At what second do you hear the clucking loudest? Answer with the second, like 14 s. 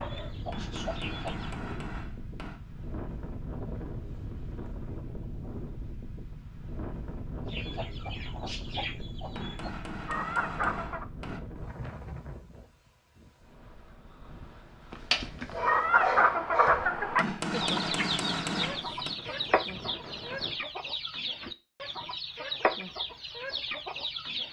16 s.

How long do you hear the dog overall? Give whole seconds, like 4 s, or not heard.
2 s.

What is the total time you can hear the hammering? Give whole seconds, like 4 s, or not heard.
7 s.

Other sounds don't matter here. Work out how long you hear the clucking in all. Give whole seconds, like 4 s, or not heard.
14 s.